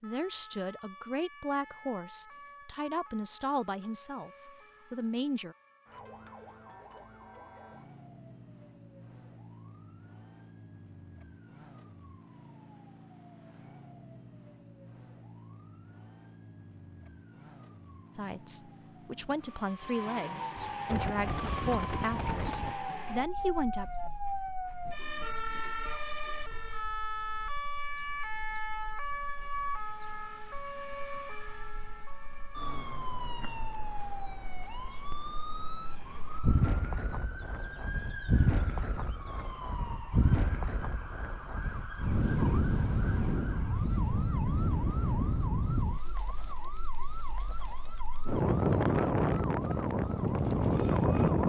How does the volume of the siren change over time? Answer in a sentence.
The volume of the siren goes up, then down.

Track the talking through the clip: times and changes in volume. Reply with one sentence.
The talking can be heard from 0.0 to 5.5 s, at a steady volume; and from 18.1 to 23.9 s, at a steady volume.